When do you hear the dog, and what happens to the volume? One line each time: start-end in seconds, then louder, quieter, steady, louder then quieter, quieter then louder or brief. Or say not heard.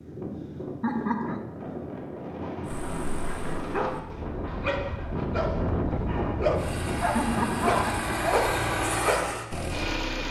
2.6-9.3 louder.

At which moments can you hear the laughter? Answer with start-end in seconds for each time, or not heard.
0.8-1.4, 7.2-8.2.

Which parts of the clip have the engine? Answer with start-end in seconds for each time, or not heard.
6.5-10.2.